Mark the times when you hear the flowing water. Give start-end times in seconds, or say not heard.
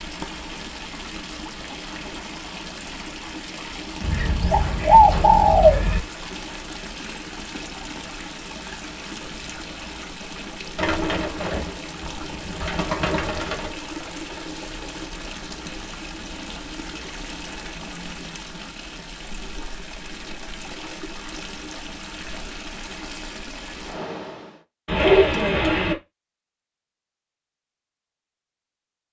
0.0-24.6.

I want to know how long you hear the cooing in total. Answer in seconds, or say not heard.
6 s.